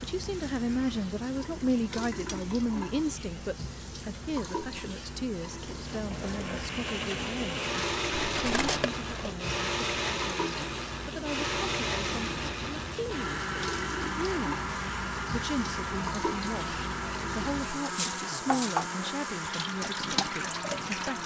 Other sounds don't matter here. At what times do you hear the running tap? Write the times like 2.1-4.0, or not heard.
0.0-21.2.